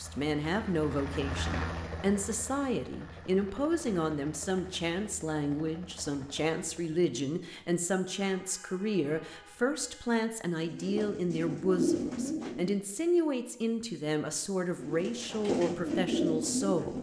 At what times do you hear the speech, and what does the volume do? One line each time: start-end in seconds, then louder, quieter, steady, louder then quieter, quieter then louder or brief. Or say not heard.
0.0-16.9 steady.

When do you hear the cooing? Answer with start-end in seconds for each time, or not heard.
10.6-12.8, 14.8-16.9.